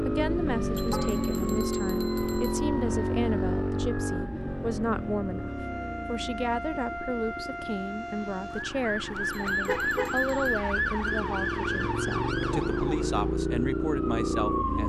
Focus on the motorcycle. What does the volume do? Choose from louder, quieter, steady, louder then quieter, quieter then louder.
quieter then louder.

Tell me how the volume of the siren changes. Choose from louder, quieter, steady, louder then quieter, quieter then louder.
louder then quieter.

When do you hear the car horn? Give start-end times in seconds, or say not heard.
0.9-1.3, 9.2-10.2.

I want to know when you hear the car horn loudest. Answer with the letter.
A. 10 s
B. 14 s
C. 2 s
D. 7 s
A.